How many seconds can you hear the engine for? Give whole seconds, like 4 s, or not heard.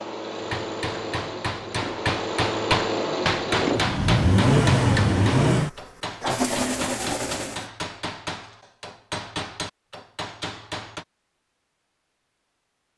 8 s.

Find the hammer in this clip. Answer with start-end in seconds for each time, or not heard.
0.3-11.1.